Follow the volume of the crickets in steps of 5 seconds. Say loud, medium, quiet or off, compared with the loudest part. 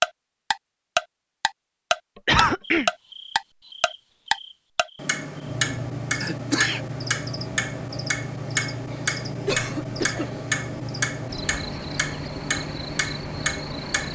medium, loud, loud.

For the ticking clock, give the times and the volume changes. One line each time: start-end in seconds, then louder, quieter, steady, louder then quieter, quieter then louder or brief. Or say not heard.
0.0-14.0 quieter.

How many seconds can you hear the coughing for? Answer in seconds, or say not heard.
2 s.